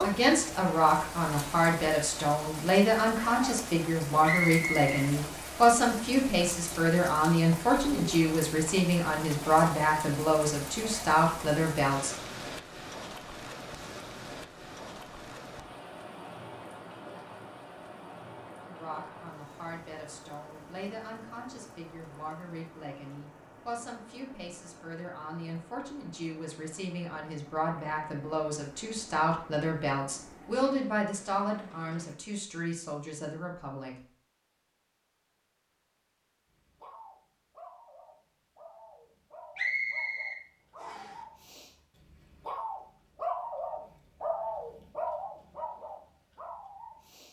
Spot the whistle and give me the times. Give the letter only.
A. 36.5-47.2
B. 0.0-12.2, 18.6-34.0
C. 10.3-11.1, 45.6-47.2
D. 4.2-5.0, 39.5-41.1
D.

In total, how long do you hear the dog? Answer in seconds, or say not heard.
11 s.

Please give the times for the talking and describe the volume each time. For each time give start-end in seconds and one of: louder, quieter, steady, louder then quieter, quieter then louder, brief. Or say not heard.
0.0-12.2 steady
18.6-34.0 louder.